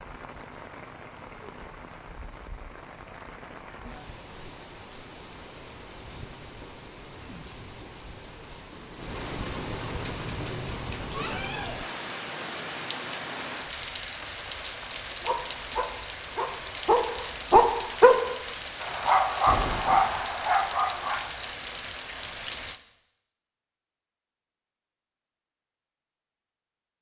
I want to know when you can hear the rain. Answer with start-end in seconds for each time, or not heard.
0.0-22.8.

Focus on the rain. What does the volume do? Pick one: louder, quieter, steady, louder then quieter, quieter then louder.
louder.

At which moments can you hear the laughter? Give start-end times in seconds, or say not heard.
not heard.